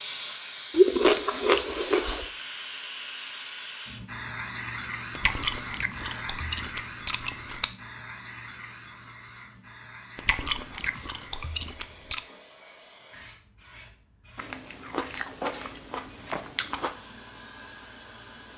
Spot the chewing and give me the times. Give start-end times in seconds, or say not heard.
0.7-2.3, 5.2-7.7, 10.2-12.2, 14.3-16.9.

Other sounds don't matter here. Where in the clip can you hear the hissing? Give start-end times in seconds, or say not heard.
0.0-18.5.